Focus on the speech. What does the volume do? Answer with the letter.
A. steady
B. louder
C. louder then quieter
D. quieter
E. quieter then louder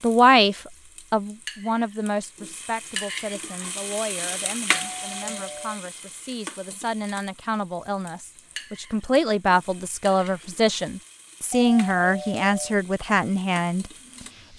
E.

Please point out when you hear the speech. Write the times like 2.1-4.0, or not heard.
0.0-13.9.